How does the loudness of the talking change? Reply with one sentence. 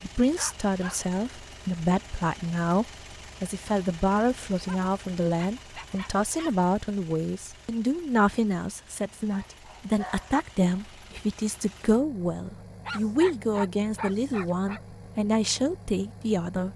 The volume of the talking stays about the same.